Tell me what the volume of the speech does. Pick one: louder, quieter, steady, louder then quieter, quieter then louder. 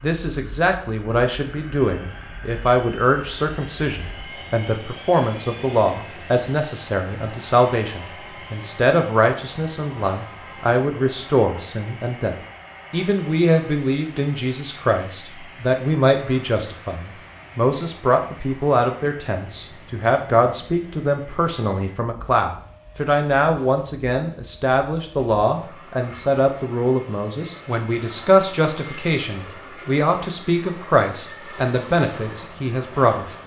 steady.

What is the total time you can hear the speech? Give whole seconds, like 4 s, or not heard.
33 s.